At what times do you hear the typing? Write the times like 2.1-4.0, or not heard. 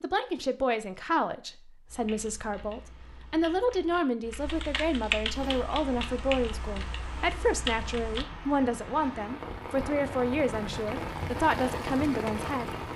1.9-8.2.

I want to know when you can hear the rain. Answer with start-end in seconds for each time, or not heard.
5.3-12.9.